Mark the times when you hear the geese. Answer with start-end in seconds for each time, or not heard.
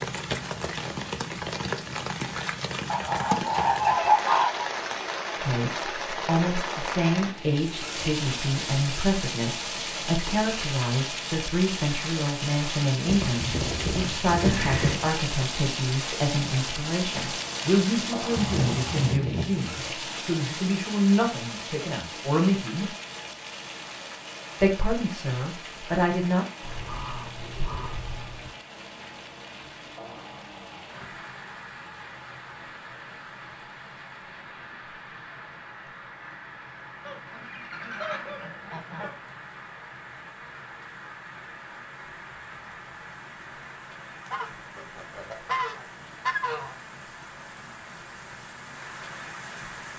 2.9-4.7, 13.1-15.1, 18.4-19.8, 26.6-28.5, 37.0-39.1, 44.2-46.8.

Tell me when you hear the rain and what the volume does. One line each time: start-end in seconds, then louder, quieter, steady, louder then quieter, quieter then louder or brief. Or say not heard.
0.0-49.9 quieter.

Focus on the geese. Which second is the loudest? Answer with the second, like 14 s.
4 s.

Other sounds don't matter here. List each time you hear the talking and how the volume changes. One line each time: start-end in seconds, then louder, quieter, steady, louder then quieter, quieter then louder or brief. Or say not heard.
5.4-22.9 steady
24.6-26.4 brief.